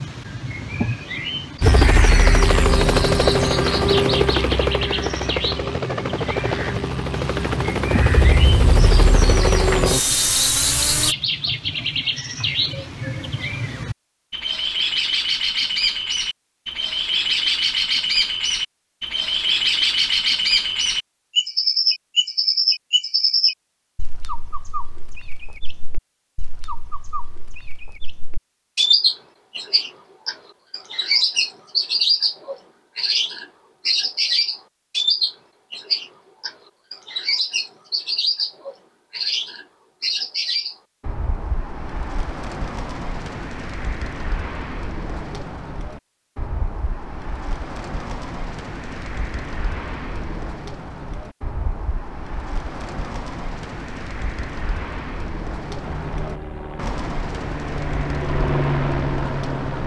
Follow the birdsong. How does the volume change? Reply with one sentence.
The loudness of the birdsong goes up, then down.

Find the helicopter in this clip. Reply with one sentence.
You can hear the helicopter from 1.6 to 11.2 s and from 55.8 to 59.8 s.